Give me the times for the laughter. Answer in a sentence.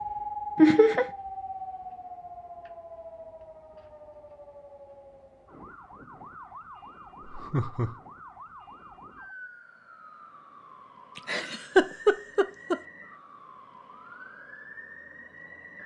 The laughter can be heard from 0.6 to 1.1 s, from 7.2 to 8.0 s and from 11.2 to 12.8 s.